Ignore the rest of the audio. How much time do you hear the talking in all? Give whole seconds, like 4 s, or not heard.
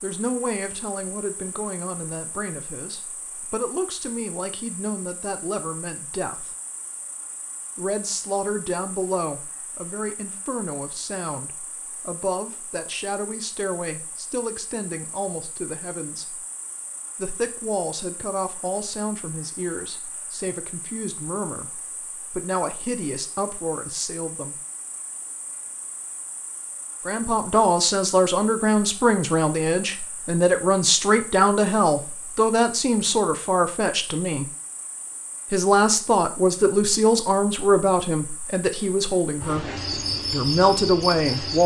35 s.